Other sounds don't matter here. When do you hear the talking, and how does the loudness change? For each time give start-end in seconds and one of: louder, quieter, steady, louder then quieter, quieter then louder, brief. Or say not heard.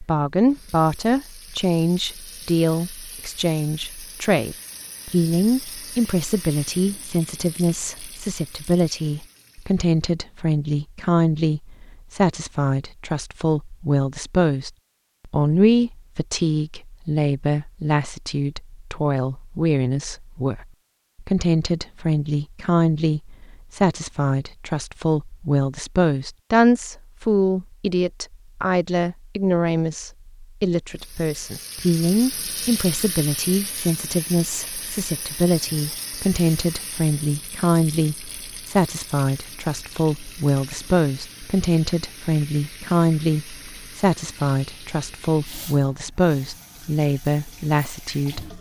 0.0-48.5 steady.